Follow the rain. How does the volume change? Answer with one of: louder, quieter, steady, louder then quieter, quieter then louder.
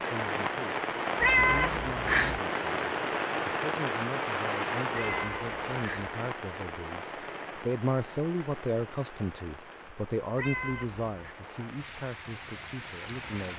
quieter.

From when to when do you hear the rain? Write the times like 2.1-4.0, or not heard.
0.0-13.5.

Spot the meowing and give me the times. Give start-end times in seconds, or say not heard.
1.2-2.4, 4.9-6.2, 10.3-11.3.